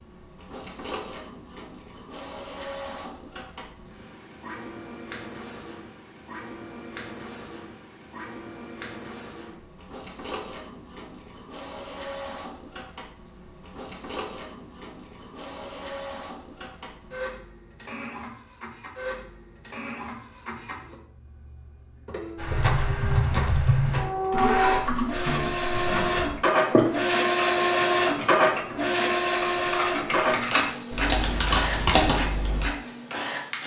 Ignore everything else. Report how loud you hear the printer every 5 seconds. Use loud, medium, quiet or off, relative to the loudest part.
quiet, quiet, quiet, quiet, medium, loud, medium.